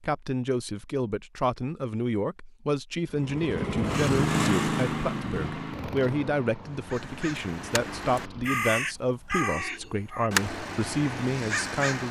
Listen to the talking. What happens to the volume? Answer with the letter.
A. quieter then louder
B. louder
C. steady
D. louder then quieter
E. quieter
C.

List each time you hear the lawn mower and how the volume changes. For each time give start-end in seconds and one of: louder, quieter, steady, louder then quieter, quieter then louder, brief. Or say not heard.
3.0-8.9 quieter.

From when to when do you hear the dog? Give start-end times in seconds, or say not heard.
not heard.